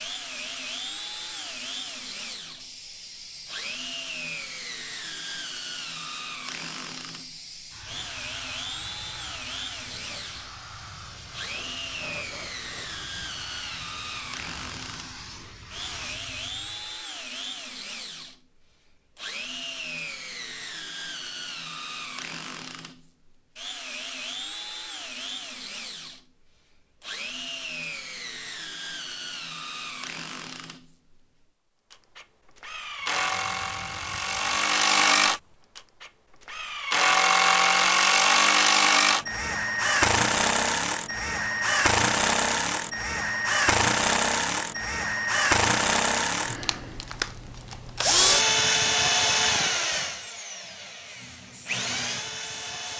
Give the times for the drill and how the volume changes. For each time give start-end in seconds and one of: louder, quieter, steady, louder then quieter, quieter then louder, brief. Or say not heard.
0.0-52.9 louder.